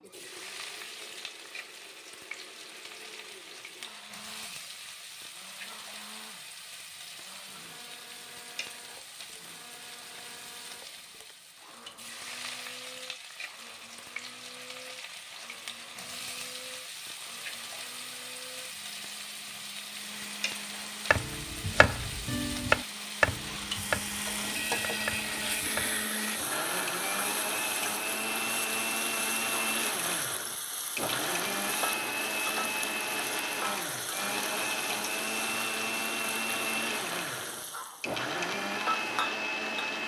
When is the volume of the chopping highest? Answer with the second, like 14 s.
23 s.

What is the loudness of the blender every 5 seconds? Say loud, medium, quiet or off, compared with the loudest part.
quiet, quiet, quiet, quiet, medium, loud, loud, loud.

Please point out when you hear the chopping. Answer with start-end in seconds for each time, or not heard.
21.1-26.1.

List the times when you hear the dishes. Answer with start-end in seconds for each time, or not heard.
not heard.